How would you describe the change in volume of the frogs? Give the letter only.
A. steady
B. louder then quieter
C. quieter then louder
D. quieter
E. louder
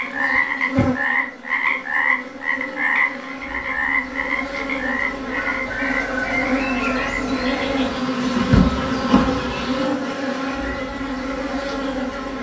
D.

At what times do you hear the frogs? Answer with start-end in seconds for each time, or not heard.
0.0-7.7.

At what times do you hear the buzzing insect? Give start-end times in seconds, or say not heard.
0.0-12.3.